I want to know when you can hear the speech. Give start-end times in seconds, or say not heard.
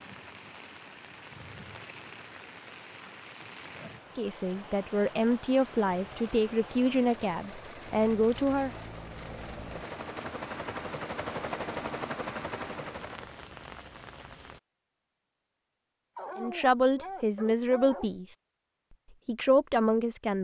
4.2-8.8, 16.4-18.4, 19.2-20.4.